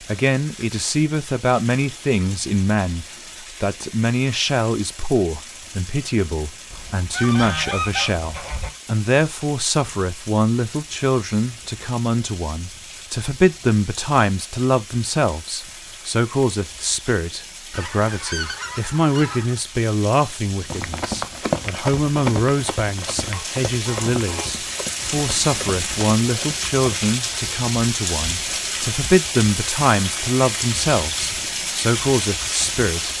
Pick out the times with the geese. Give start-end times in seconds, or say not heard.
6.7-8.7, 17.7-19.6, 23.3-24.6.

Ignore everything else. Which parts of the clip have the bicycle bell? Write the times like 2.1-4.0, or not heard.
not heard.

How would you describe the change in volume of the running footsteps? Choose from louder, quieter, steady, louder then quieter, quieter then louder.
quieter.